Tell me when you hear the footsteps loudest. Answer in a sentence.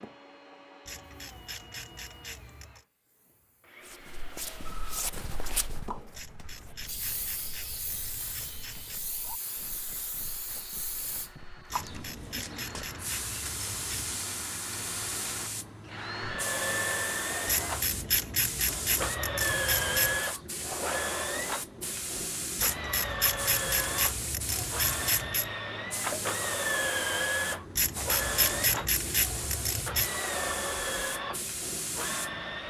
The loudest moment of the footsteps is at 5 seconds.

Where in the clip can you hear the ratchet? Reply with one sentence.
The ratchet can be heard from 0.8 to 2.9 s, from 6.1 to 9.1 s, from 11.7 to 14.2 s, from 17.4 to 20.3 s, from 22.6 to 25.5 s and from 27.8 to 30.1 s.